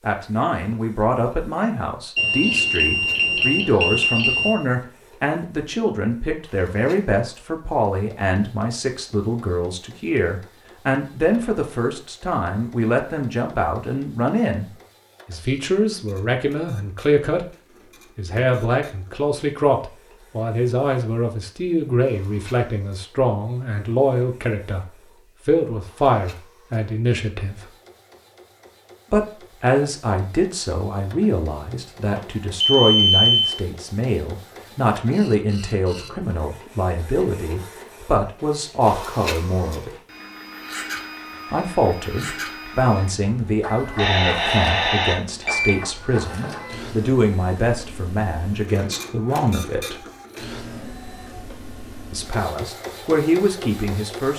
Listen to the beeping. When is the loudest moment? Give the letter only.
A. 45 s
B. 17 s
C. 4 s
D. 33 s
D.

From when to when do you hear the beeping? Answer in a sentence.
The beeping can be heard from 2.1 to 4.6 s, from 32.1 to 33.5 s and from 44.0 to 45.7 s.